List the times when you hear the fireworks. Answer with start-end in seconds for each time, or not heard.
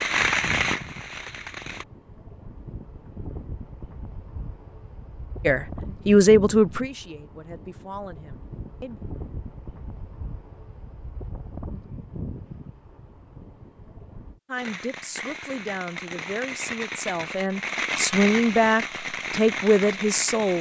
0.0-1.9, 14.6-20.5.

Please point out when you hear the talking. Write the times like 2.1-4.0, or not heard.
5.5-9.0, 14.4-20.5.